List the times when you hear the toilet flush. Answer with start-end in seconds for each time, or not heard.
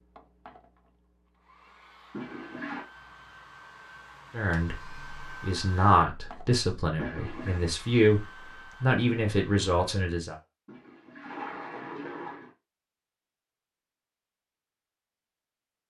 2.1-2.9, 7.0-7.6, 10.7-12.5.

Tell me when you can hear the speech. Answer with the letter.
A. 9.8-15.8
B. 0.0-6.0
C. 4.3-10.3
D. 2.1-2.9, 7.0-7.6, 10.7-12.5
C.